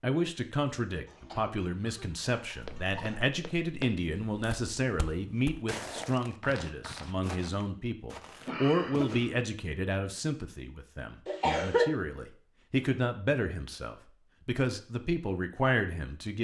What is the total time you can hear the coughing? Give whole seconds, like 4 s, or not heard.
4 s.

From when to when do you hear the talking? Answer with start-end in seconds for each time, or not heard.
0.0-16.3.